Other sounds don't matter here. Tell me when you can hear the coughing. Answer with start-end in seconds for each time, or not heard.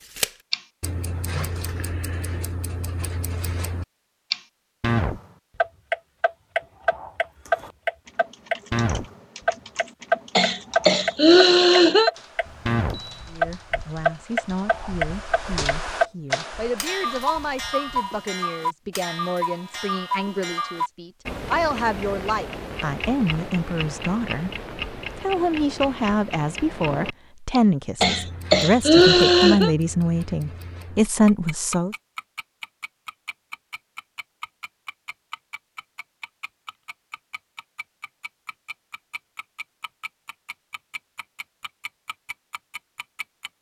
10.3-12.1, 28.0-29.7.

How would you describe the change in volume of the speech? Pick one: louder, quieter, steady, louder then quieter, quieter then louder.
louder.